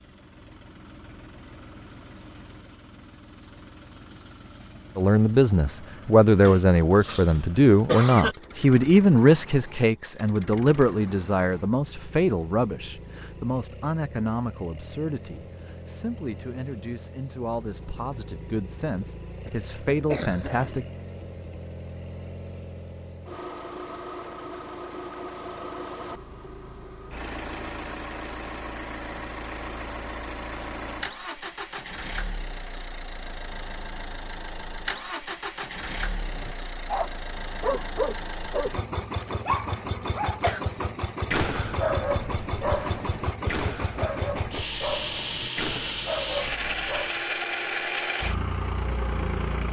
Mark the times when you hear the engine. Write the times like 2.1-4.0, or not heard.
0.0-49.6.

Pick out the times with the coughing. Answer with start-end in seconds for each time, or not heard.
6.5-8.3, 19.4-20.9, 39.1-40.6.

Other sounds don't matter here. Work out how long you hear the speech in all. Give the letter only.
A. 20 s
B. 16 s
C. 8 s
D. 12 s
B.